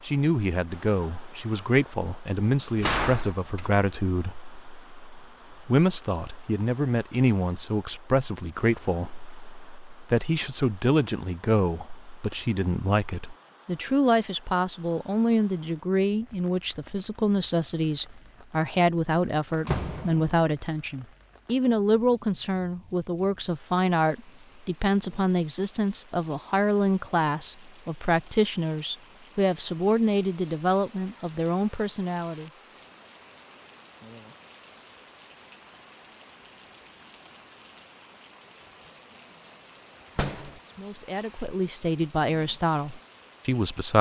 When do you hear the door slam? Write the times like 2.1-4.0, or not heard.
2.6-3.7, 19.1-20.4, 40.1-40.6.